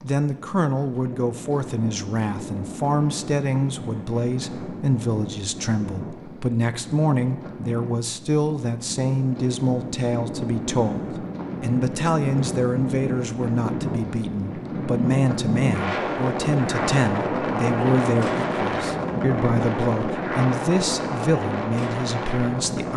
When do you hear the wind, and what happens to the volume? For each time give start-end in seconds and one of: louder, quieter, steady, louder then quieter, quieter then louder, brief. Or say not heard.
0.0-22.9 louder.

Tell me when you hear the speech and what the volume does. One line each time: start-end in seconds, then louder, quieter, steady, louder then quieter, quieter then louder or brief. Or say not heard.
0.0-22.9 steady.